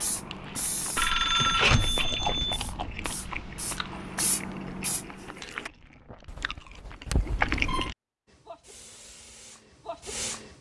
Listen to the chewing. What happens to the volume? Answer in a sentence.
The volume of the chewing goes down, then up.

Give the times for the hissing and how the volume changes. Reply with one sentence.
The hissing can be heard from 0.0 to 5.7 s, getting quieter then louder; and briefly from 8.2 to 10.5 s.